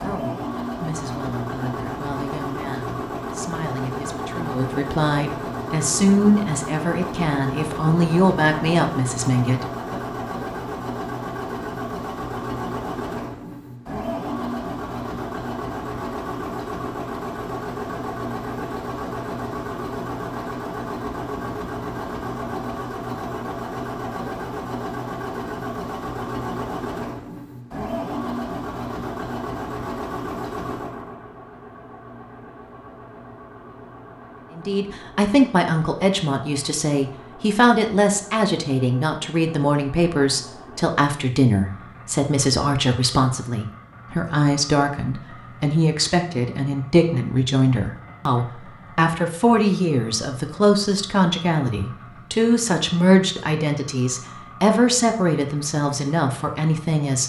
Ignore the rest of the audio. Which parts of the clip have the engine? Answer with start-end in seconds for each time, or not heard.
0.0-57.2.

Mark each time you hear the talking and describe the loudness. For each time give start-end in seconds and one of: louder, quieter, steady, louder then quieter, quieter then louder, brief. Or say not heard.
0.0-10.0 louder
34.5-57.2 steady.